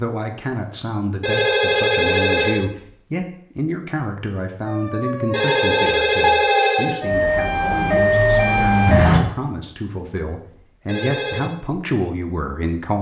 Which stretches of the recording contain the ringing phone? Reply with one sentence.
The ringing phone can be heard from 1.2 to 2.6 s, from 5.3 to 7.0 s and from 10.8 to 11.5 s.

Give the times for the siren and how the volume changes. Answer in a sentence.
The siren can be heard from 4.7 to 9.2 s, getting louder.